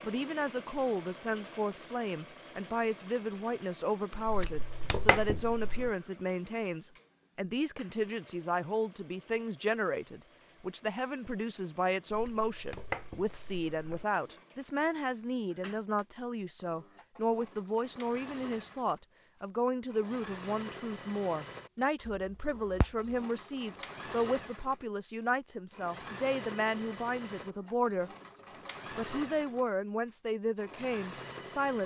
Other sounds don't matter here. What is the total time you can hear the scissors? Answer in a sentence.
The scissors can be heard for 5 seconds in total.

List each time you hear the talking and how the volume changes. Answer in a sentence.
You can hear the talking from 0.0 to 28.1 s, at a steady volume; and briefly from 28.9 to 31.8 s.